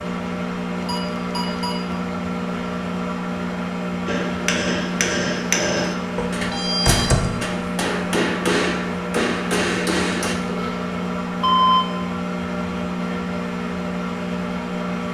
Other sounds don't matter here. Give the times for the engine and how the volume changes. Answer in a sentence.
The engine can be heard from 0.0 to 15.0 s, at a steady volume.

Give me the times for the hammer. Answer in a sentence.
The hammer can be heard from 4.0 to 10.3 s.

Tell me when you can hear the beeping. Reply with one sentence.
You can hear the beeping from 0.8 to 1.8 s, from 6.2 to 7.3 s and from 10.4 to 11.8 s.